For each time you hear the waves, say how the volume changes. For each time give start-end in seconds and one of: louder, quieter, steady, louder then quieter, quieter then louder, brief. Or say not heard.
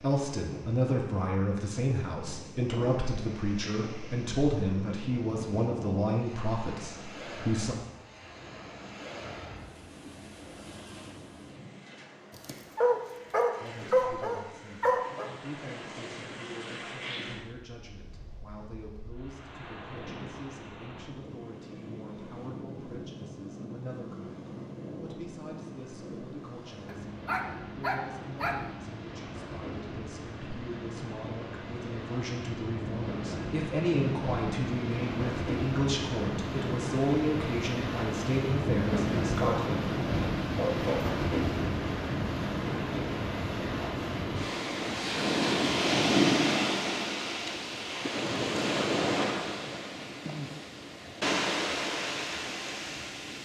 0.0-53.4 louder.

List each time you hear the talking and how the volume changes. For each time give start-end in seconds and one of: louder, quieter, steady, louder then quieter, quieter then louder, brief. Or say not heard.
0.0-7.8 steady
13.6-39.8 louder.